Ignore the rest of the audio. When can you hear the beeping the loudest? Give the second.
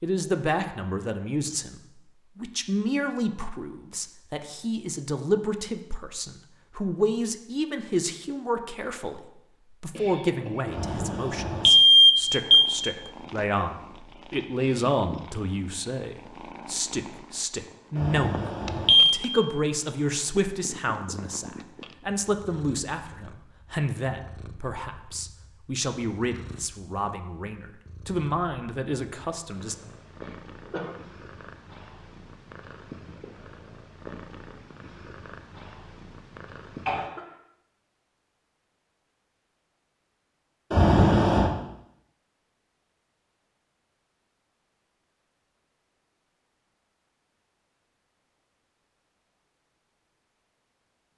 12 s.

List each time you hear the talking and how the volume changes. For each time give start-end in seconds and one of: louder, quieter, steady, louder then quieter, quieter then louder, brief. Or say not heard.
0.0-29.8 steady.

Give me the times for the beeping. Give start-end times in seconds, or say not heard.
10.8-12.7, 17.9-19.2, 40.7-41.5.